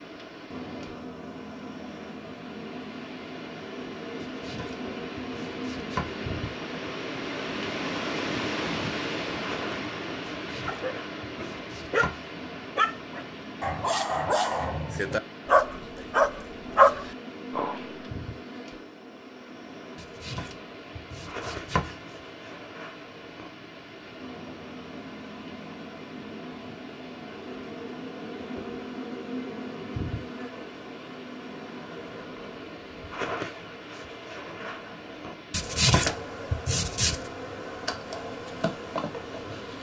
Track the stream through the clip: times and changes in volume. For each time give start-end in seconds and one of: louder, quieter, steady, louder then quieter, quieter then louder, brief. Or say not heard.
0.0-39.7 quieter.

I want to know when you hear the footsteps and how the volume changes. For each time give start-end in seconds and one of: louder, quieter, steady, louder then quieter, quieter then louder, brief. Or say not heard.
not heard.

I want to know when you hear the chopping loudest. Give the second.
36 s.